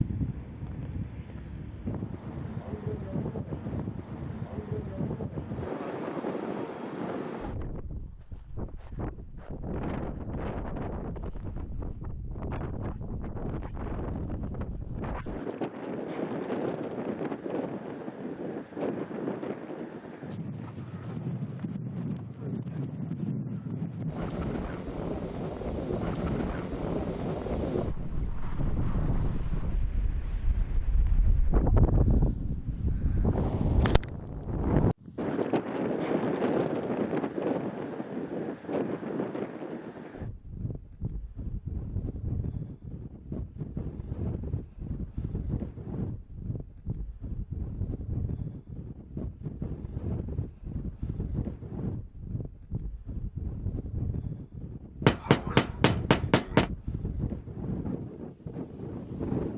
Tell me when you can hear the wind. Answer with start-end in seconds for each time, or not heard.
0.0-59.5.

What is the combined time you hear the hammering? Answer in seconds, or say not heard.
2 s.